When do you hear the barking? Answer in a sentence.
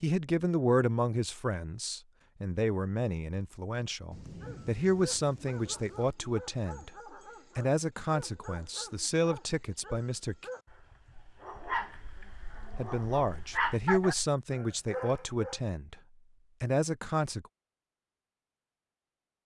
The barking can be heard from 4.3 to 15.6 s.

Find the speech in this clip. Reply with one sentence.
You can hear the speech from 0.0 to 6.9 s, from 7.5 to 10.4 s, from 12.8 to 15.9 s and from 16.6 to 17.4 s.